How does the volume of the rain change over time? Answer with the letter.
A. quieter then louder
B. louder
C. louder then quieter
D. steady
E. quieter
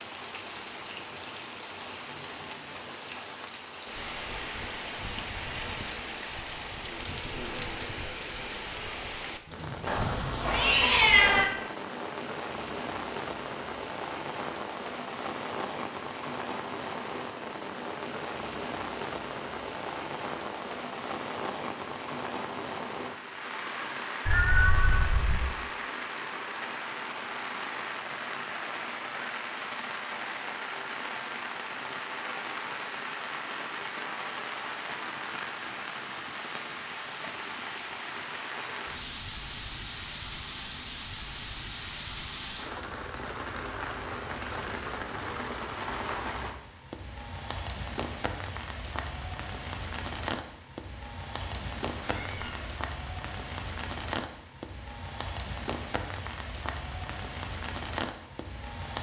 D.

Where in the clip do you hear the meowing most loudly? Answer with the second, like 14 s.
11 s.